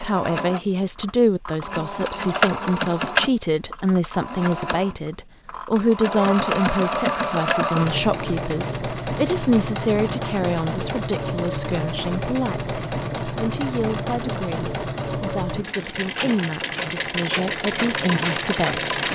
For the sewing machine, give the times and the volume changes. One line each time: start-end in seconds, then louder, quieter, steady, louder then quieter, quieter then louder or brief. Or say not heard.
0.0-19.1 steady.